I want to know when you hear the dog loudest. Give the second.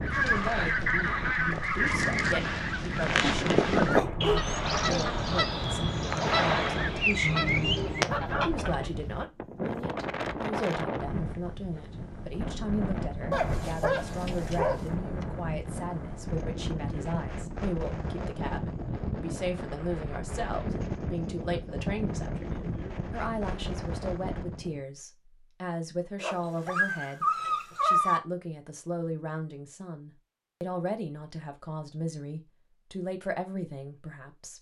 28 s.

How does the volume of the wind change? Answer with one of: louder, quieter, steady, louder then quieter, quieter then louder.
steady.